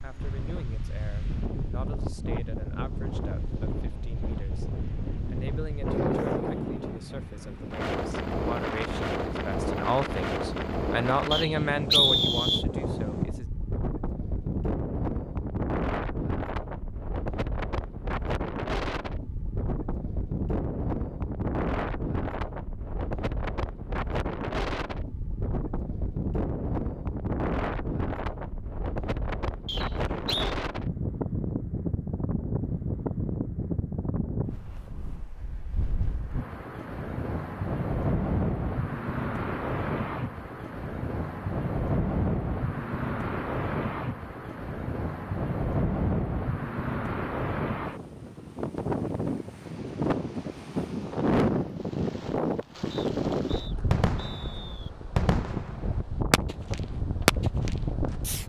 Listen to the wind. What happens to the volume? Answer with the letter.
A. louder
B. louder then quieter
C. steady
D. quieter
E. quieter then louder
C.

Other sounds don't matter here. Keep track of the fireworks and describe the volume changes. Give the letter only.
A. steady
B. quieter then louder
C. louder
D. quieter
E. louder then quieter
B.